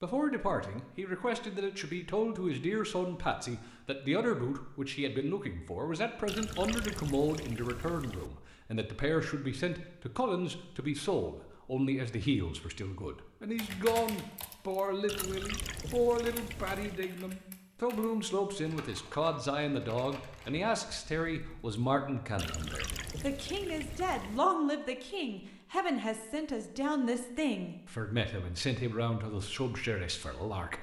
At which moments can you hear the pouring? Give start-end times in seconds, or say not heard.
6.2-8.3, 15.1-17.0, 22.4-24.4.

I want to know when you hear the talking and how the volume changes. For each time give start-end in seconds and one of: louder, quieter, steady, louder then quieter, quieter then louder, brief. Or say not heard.
0.0-30.7 steady.